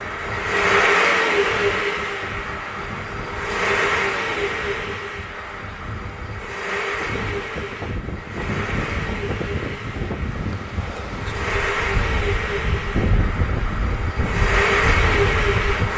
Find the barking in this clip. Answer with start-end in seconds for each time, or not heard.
not heard.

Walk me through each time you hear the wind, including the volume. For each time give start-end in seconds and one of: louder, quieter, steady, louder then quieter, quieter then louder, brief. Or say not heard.
0.0-15.9 louder.